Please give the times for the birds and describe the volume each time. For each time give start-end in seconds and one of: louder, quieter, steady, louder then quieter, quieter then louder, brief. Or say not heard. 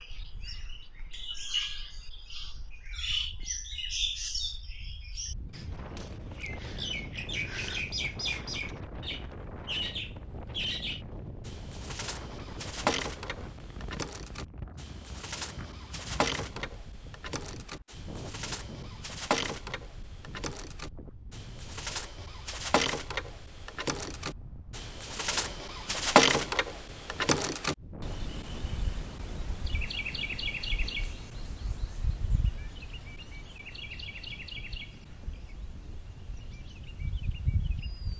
0.0-38.1 louder then quieter.